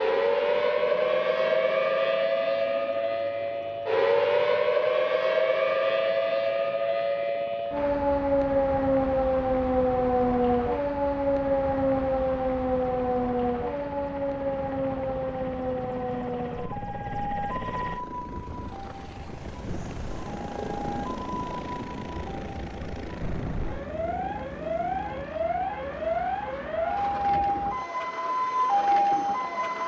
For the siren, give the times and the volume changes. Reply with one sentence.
The siren can be heard from 0.0 to 29.8 s, getting quieter then louder.